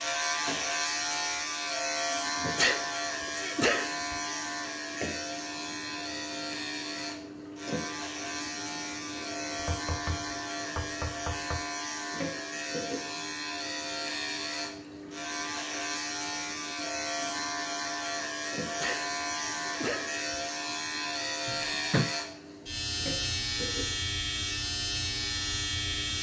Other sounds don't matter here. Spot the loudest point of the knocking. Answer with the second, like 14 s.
22 s.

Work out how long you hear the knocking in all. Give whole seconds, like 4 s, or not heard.
3 s.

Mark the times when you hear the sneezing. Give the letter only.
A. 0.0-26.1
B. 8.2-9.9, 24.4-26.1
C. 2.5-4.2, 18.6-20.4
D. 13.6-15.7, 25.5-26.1
C.